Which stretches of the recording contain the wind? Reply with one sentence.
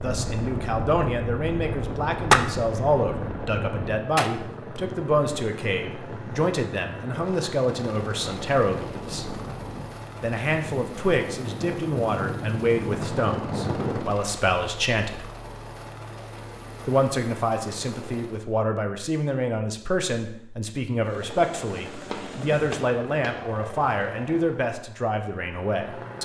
The wind can be heard from 0.0 to 14.2 s.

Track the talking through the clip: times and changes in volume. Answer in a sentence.
You can hear the talking from 0.0 to 9.3 s, at a steady volume; from 10.2 to 15.2 s, at a steady volume; and from 16.9 to 26.2 s, at a steady volume.